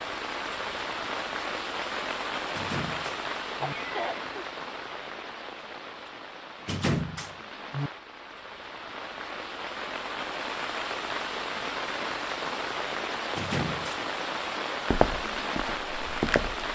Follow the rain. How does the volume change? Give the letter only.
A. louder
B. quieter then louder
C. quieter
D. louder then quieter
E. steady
B.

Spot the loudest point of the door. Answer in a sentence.
The volume of the door peaks at 7 seconds.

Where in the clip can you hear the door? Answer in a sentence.
The door can be heard from 2.5 to 3.8 s, from 6.6 to 7.9 s and from 13.2 to 14.0 s.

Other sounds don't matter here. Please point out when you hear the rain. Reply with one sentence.
The rain can be heard from 0.0 to 16.7 s.